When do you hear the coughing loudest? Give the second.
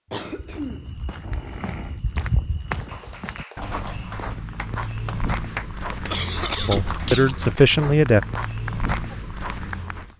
7 s.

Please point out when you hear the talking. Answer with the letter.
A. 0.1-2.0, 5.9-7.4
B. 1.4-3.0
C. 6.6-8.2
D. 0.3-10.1
C.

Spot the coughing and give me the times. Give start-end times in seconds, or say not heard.
0.1-2.0, 5.9-7.4.